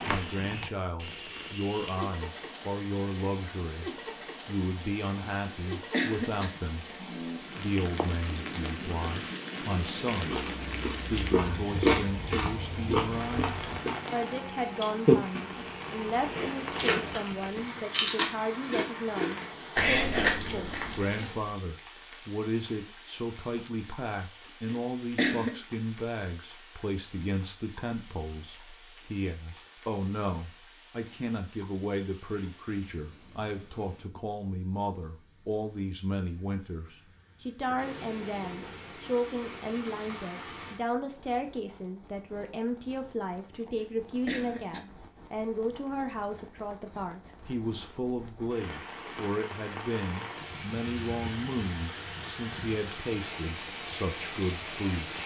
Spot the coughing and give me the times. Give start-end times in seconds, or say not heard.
5.5-7.4, 24.6-25.6, 43.8-44.9.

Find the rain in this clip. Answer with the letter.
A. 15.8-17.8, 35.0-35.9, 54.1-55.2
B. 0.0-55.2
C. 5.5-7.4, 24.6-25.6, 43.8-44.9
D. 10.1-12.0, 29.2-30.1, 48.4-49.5
B.